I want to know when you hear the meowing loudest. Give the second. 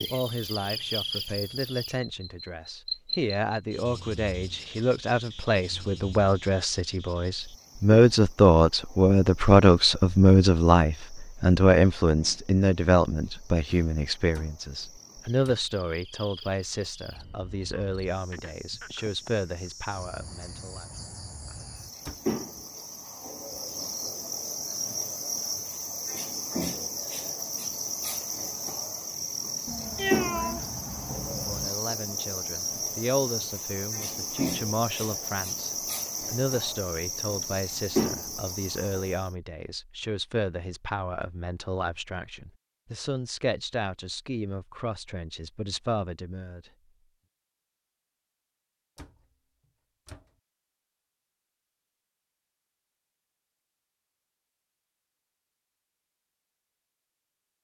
30 s.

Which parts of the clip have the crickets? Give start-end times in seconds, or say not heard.
0.0-39.4.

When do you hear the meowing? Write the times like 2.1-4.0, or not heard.
29.6-31.7.